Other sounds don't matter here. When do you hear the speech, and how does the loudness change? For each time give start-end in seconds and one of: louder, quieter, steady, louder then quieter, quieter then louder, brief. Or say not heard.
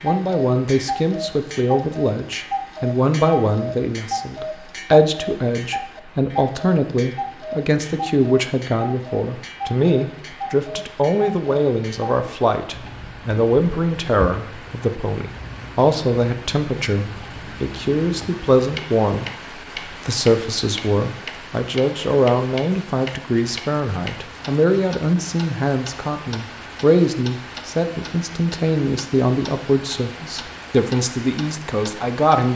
0.0-32.5 steady.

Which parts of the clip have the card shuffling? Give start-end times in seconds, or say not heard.
not heard.